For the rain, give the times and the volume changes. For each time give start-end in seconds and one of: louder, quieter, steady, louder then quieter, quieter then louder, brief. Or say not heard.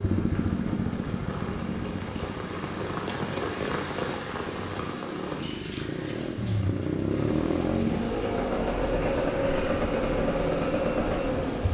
0.0-11.6 louder then quieter.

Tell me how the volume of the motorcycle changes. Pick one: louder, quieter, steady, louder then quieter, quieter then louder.
quieter then louder.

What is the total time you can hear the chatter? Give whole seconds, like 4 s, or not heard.
not heard.